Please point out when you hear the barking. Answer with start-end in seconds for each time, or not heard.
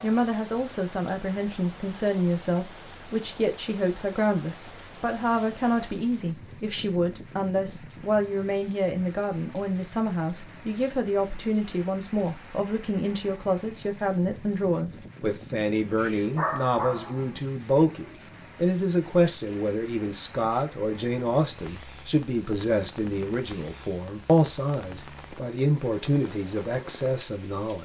15.9-17.4.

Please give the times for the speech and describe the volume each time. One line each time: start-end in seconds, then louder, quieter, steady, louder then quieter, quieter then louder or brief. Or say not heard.
0.0-27.8 steady.